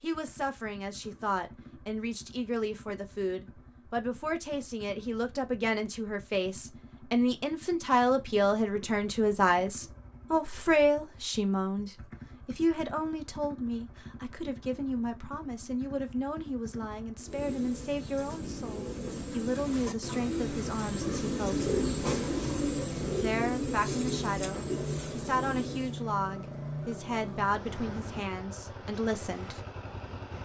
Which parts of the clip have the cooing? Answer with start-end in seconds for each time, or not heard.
17.1-26.1.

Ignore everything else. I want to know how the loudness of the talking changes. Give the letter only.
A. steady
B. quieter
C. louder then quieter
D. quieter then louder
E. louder
C.